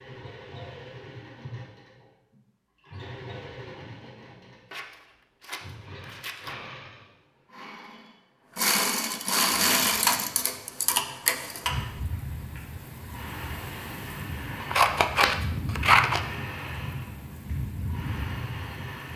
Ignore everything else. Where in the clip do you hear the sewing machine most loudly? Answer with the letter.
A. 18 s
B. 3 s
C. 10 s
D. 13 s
C.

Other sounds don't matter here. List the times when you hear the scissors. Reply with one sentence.
The scissors can be heard from 4.7 to 6.6 s and from 14.6 to 16.2 s.